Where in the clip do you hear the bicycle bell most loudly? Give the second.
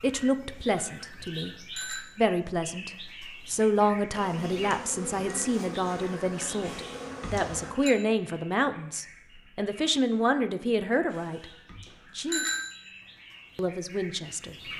12 s.